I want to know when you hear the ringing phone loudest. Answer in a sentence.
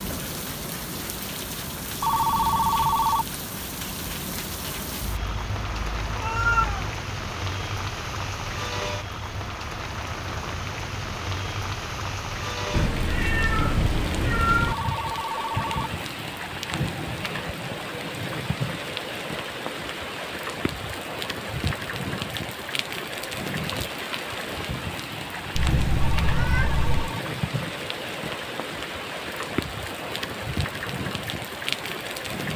The loudest moment of the ringing phone is at 3 seconds.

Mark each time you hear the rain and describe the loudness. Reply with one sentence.
You can hear the rain from 0.0 to 32.5 s, at a steady volume.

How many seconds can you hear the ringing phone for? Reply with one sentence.
You can hear the ringing phone for 4 seconds altogether.